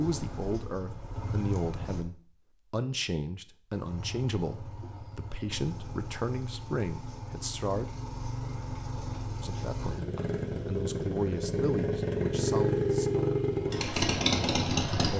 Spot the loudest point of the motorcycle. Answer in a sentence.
The loudest moment of the motorcycle is at 13 seconds.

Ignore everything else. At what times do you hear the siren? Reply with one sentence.
You can't hear the siren here.